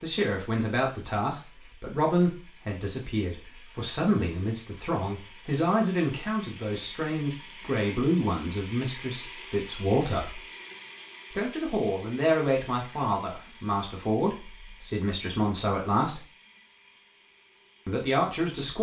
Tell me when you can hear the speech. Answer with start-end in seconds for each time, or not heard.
0.0-10.4, 11.3-16.2, 17.9-18.7.